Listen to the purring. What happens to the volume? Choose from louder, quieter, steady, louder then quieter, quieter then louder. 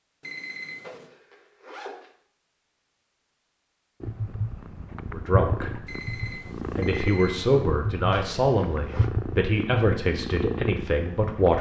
steady.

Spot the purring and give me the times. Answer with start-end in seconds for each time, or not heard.
4.0-11.5.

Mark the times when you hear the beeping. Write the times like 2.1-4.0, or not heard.
0.2-1.1, 5.8-7.5.